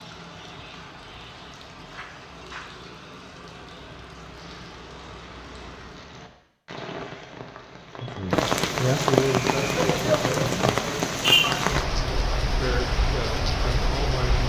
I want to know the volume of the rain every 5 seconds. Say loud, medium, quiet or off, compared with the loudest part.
quiet, loud, loud.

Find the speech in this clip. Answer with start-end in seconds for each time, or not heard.
8.0-10.6, 12.6-14.4.